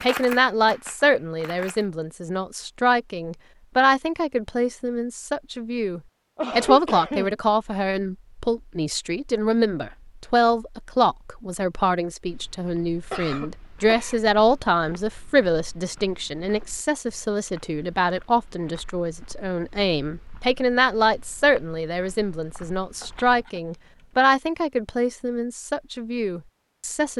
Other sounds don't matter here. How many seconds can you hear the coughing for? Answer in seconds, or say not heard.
3 s.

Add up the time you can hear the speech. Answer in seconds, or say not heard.
27 s.